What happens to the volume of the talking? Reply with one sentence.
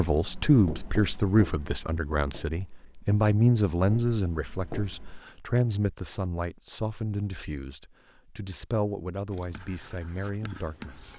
The volume of the talking goes down.